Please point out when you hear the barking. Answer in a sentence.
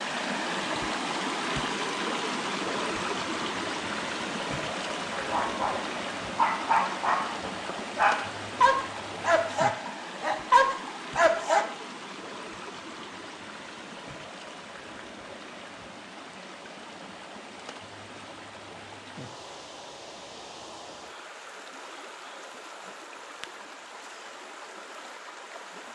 The barking can be heard from 5.2 to 11.7 s.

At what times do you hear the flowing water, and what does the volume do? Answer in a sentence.
You can hear the flowing water from 0.0 to 25.8 s, getting quieter.